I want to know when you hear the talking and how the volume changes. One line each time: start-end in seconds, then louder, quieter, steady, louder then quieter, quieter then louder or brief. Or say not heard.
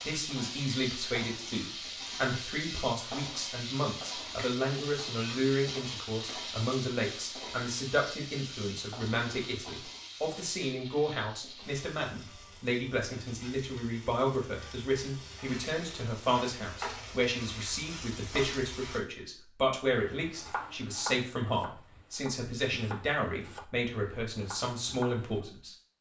0.1-25.8 steady.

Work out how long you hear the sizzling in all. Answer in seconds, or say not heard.
19 s.